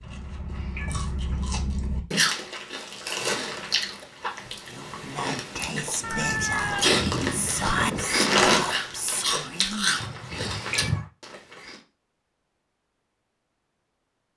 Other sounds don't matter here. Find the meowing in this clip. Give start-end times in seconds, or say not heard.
0.0-1.6, 6.0-8.1, 10.0-11.1.